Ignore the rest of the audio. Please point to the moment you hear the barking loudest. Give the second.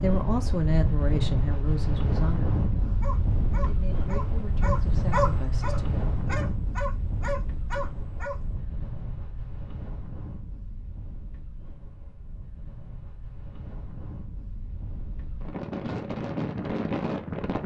5 s.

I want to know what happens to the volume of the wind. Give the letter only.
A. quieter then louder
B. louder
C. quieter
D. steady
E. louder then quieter
A.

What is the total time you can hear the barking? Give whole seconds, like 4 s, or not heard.
5 s.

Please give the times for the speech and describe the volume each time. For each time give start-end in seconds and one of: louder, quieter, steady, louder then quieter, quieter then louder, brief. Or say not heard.
0.0-6.0 quieter then louder.